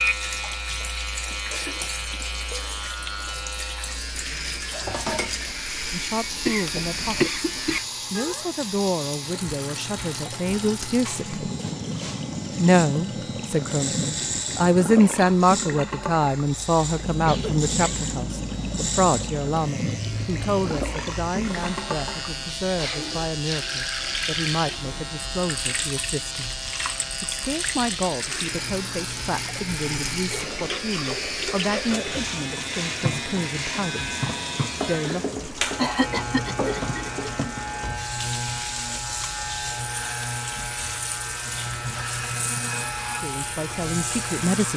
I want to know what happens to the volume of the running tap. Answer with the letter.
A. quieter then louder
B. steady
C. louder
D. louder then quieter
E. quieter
B.